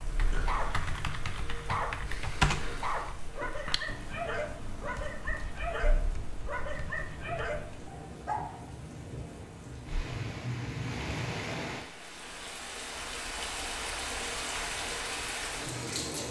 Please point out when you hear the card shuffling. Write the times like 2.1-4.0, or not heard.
not heard.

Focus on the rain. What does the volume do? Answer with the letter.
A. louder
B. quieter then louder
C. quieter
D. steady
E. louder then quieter
A.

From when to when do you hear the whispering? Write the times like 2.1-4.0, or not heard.
not heard.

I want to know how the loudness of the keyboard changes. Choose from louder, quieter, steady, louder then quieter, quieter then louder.
louder then quieter.